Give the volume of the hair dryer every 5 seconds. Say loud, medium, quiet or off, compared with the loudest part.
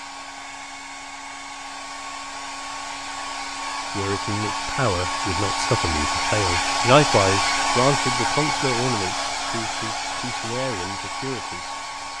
medium, loud, medium.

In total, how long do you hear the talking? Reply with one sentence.
You can hear the talking for 8 seconds altogether.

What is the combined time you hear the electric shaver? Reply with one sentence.
The electric shaver can't be heard in this clip.